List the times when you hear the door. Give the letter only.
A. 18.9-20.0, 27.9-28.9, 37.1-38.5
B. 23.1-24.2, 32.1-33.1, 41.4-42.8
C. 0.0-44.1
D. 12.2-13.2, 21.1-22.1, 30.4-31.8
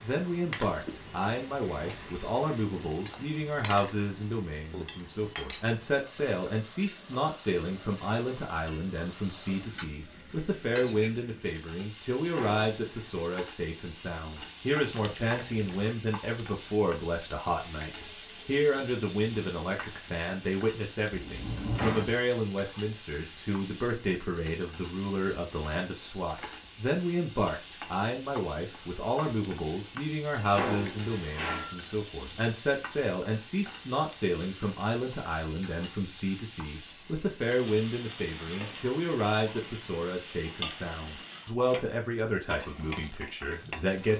D.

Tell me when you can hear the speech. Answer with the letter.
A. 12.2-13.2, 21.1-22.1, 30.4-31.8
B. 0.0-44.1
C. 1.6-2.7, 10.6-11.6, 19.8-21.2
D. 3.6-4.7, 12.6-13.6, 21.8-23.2
B.